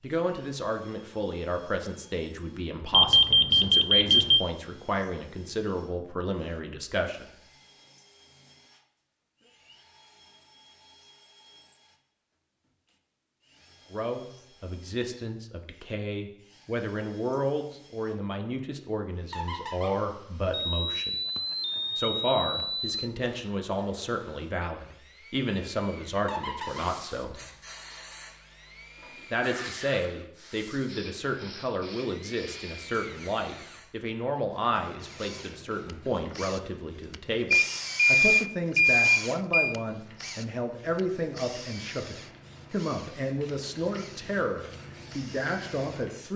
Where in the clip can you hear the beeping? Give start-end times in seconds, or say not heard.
2.9-4.4, 20.6-22.9, 37.5-39.8.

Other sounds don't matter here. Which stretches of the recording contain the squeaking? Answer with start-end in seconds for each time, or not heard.
19.3-19.9, 26.2-26.9.